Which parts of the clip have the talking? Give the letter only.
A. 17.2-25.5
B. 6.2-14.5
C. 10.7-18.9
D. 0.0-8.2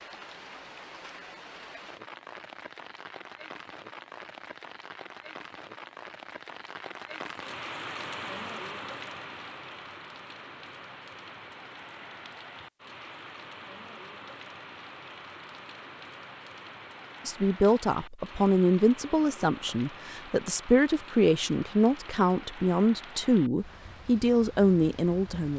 A.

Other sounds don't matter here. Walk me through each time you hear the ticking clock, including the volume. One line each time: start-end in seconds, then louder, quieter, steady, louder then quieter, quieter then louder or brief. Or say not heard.
not heard.